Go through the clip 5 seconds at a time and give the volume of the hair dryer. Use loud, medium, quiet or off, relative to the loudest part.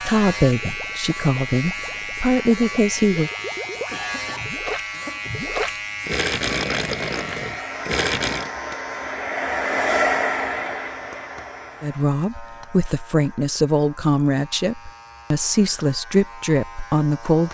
off, loud, loud, off.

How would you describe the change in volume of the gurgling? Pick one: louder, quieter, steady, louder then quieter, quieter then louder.
louder.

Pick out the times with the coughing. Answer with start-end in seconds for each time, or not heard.
3.9-5.3.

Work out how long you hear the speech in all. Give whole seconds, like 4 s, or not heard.
9 s.